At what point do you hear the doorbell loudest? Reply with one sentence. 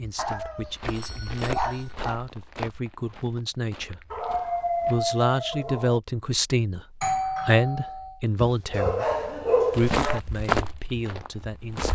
The volume of the doorbell peaks at 7 seconds.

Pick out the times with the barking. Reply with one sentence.
The barking can be heard from 0.1 to 2.2 s, from 4.1 to 6.0 s and from 8.4 to 10.2 s.